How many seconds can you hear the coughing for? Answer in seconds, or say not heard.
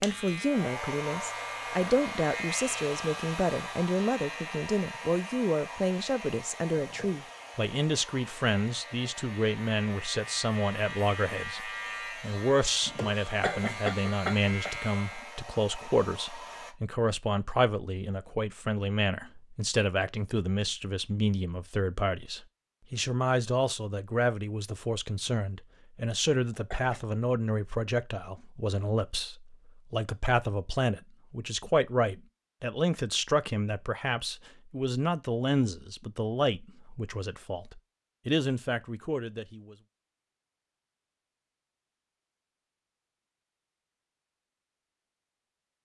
2 s.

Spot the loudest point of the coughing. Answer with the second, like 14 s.
14 s.